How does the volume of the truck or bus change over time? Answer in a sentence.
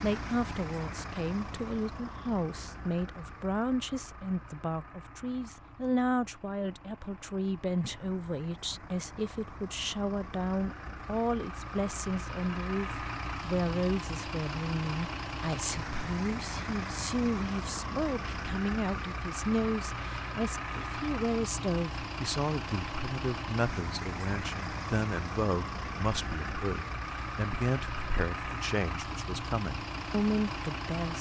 The volume of the truck or bus goes up.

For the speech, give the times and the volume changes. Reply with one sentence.
The speech can be heard from 0.0 to 31.1 s, at a steady volume.